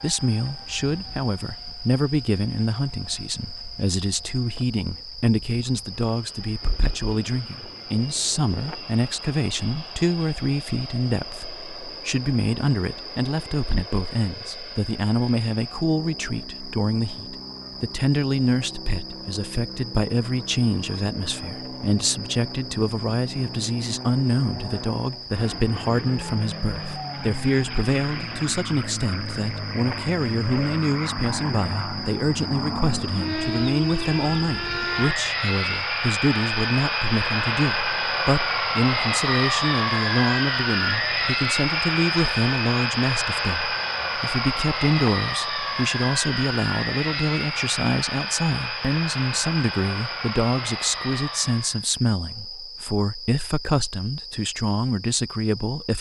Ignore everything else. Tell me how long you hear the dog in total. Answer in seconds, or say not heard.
not heard.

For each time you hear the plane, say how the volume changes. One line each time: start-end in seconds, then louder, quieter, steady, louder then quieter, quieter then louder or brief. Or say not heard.
0.0-51.9 louder.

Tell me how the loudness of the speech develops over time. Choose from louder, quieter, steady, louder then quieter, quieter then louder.
steady.